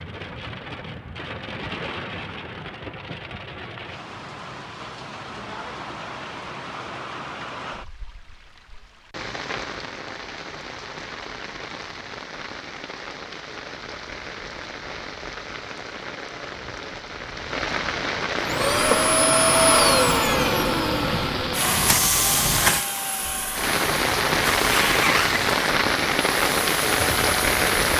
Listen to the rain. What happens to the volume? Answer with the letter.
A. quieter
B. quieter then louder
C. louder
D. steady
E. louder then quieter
C.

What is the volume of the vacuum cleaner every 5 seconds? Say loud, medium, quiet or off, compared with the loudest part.
off, off, off, loud, medium, medium.